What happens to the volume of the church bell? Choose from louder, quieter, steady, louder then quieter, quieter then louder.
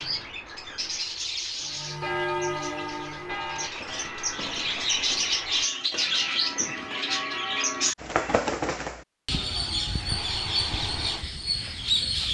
quieter then louder.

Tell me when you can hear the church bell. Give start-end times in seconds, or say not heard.
1.6-8.4.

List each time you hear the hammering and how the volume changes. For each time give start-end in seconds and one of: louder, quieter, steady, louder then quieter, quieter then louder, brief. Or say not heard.
not heard.